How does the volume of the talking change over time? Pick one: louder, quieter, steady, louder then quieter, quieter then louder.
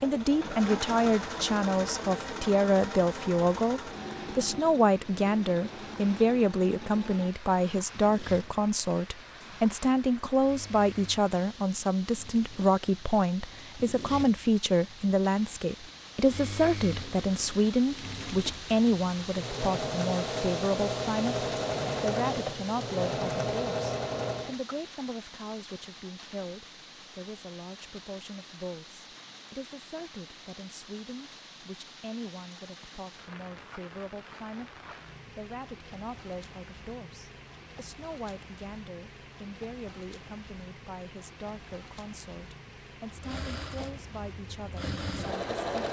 quieter.